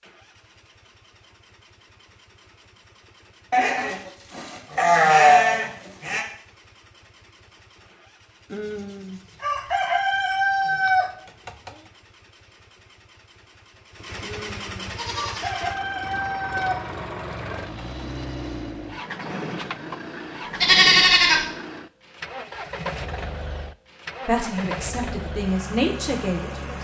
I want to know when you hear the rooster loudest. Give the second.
11 s.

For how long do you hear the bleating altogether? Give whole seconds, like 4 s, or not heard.
5 s.